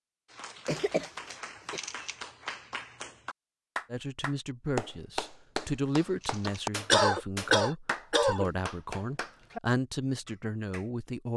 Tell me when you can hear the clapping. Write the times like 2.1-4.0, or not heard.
0.2-9.6, 10.2-10.8.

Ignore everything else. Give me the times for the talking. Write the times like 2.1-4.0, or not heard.
3.9-11.3.